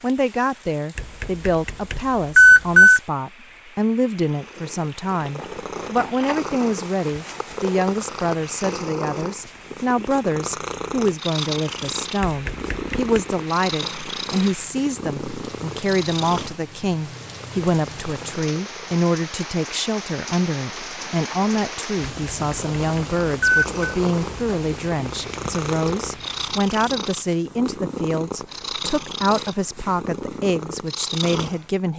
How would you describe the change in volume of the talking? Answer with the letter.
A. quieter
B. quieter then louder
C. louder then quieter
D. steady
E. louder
D.